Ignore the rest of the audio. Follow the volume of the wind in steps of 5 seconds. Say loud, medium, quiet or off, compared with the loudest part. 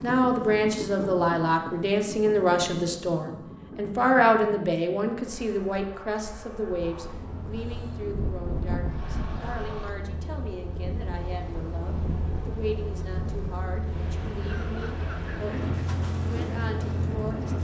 off, loud, loud, loud.